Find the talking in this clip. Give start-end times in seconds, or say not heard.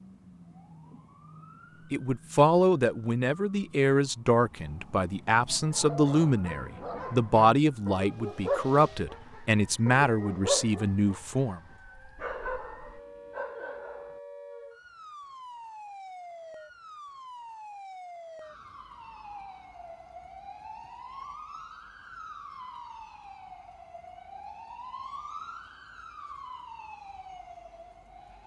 1.9-11.6.